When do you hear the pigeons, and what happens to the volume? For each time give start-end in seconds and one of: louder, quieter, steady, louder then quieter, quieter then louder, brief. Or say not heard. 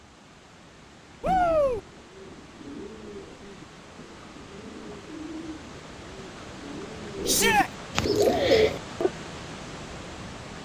1.2-9.1 louder.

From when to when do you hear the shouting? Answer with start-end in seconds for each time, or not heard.
1.2-1.8, 7.2-7.7.